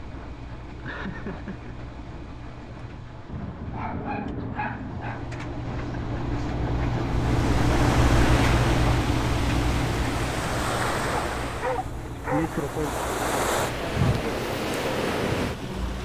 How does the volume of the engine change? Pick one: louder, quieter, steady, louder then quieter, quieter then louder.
louder then quieter.